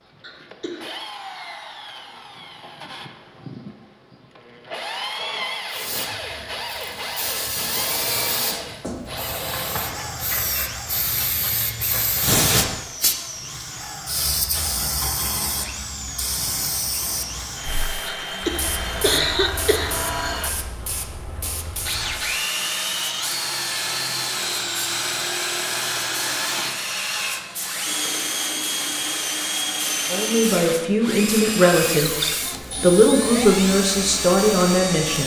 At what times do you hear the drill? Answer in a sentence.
The drill can be heard from 0.0 to 35.2 s.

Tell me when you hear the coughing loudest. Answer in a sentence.
The volume of the coughing peaks at 19 seconds.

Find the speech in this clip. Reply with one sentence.
The speech can be heard from 30.1 to 35.2 s.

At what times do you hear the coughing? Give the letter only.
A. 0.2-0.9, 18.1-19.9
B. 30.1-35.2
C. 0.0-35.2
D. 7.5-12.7
A.